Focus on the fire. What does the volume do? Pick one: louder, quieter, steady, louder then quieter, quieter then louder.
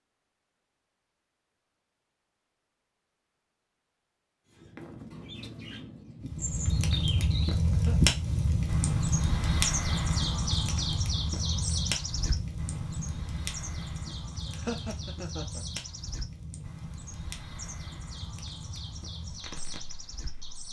quieter.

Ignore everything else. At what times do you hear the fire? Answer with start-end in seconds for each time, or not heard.
6.2-20.6.